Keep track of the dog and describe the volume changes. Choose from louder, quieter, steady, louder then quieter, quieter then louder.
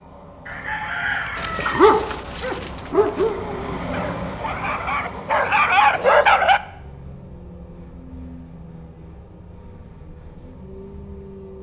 quieter then louder.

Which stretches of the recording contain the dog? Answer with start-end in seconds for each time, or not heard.
1.4-6.6.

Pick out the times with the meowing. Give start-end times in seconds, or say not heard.
not heard.